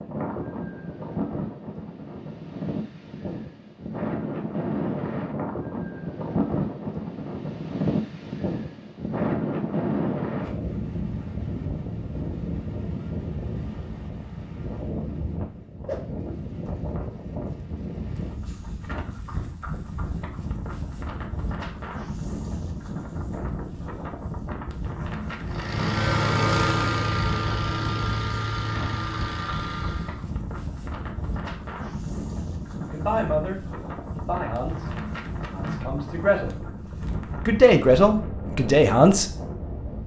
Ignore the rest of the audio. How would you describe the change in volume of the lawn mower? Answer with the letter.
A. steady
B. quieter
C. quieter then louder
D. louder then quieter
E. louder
B.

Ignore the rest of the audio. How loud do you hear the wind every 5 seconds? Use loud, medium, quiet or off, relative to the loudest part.
loud, loud, loud, medium, medium, medium, medium, medium.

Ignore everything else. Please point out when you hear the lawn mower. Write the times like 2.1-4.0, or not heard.
25.4-30.2.